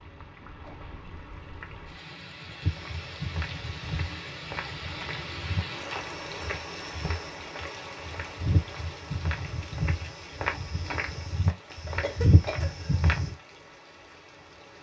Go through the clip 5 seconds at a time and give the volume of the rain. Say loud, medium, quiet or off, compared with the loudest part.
loud, loud, medium.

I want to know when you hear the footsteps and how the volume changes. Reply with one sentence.
The footsteps can be heard from 2.6 to 13.3 s, getting louder.